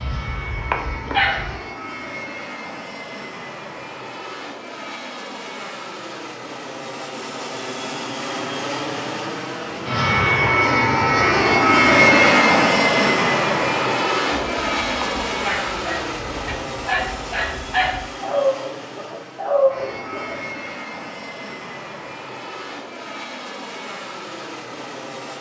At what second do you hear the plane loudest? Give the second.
12 s.